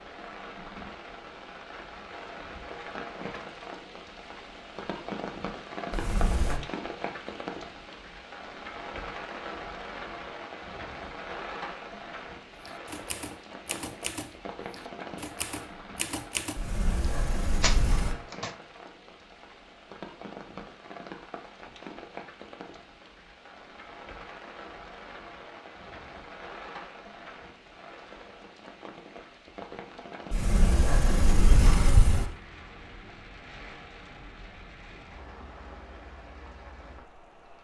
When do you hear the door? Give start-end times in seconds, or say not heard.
5.9-6.6, 16.6-18.1, 30.3-32.3.